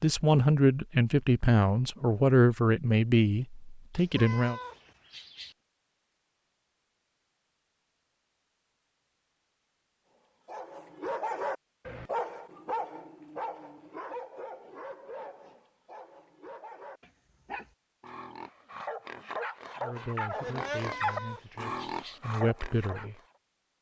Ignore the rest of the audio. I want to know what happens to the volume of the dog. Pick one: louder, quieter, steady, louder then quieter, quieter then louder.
quieter then louder.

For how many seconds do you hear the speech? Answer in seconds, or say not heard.
8 s.